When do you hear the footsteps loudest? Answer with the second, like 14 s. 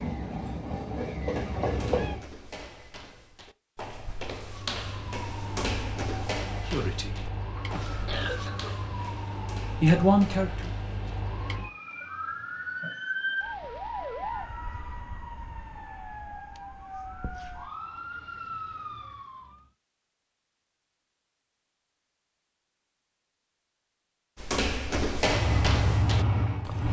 25 s.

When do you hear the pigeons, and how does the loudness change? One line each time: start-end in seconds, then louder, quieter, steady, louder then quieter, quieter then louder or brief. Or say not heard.
not heard.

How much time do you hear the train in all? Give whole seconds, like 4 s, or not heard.
4 s.